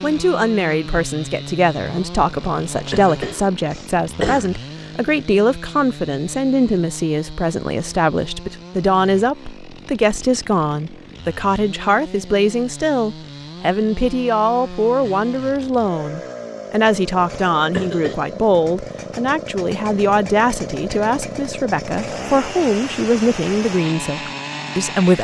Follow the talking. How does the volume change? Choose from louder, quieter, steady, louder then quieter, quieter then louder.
steady.